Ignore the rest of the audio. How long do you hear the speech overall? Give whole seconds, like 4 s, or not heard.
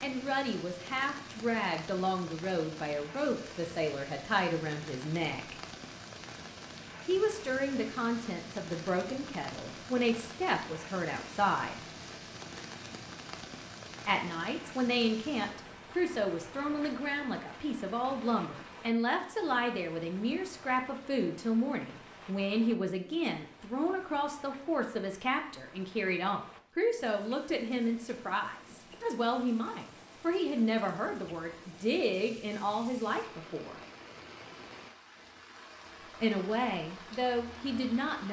32 s.